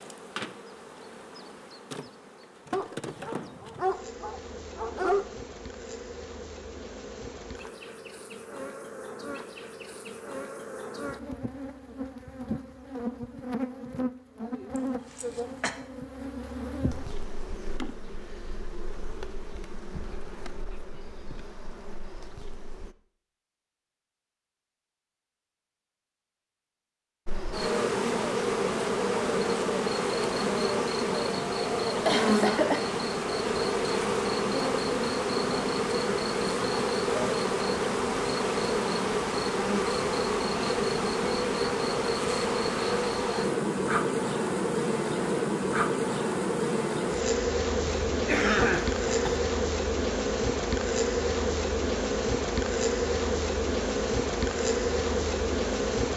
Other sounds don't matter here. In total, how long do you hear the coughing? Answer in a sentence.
The coughing can be heard for 3 seconds in total.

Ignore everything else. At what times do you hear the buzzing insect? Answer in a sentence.
You can hear the buzzing insect from 0.0 to 22.9 s and from 27.2 to 56.1 s.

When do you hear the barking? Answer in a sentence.
The barking can be heard from 2.7 to 5.2 s.